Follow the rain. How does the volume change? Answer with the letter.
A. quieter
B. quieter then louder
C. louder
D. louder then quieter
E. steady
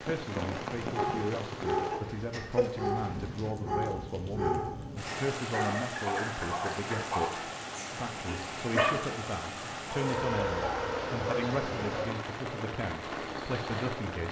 E.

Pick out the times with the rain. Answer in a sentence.
The rain can be heard from 0.0 to 14.2 s.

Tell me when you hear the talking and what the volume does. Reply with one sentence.
The talking can be heard from 0.0 to 14.2 s, at a steady volume.